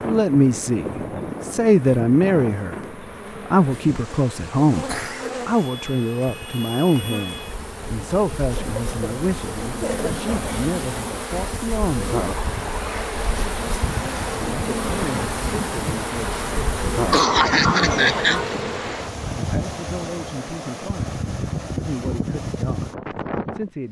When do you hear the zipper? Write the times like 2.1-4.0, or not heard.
not heard.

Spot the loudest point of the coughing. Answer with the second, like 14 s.
17 s.